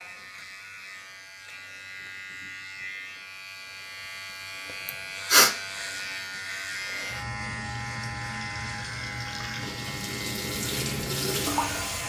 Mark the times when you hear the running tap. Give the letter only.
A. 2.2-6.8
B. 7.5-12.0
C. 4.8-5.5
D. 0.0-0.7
B.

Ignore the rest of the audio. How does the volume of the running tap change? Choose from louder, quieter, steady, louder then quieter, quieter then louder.
louder.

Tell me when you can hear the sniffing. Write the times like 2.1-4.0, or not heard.
4.8-5.5.